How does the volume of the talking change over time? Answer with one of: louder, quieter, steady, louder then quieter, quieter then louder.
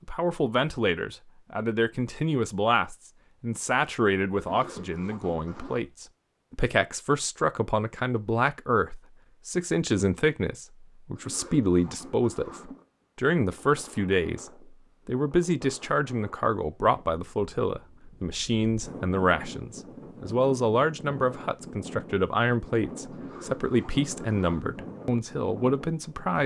steady.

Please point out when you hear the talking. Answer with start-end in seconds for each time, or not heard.
0.1-26.4.